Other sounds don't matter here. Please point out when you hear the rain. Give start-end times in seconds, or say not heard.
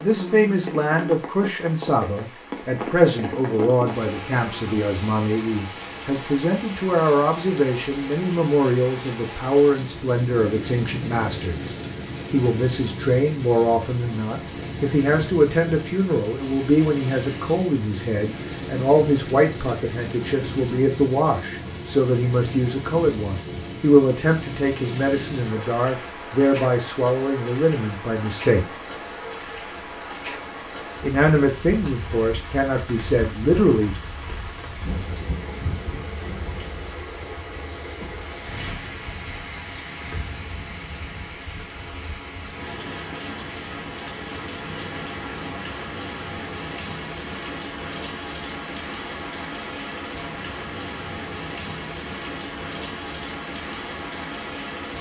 0.0-54.9.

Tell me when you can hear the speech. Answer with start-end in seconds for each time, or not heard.
0.0-28.6, 31.0-34.0.